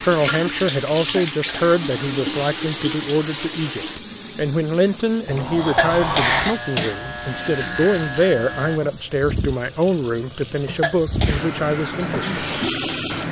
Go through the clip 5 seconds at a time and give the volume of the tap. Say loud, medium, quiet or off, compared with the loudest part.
loud, medium, loud.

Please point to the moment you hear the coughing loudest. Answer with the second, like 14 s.
6 s.